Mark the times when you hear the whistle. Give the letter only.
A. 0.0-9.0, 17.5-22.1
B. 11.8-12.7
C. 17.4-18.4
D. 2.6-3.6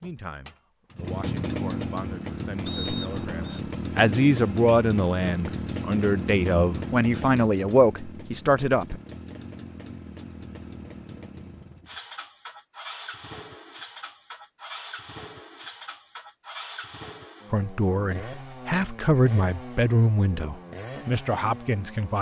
D.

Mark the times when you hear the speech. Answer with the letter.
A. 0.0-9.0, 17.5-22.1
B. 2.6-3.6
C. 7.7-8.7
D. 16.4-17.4
A.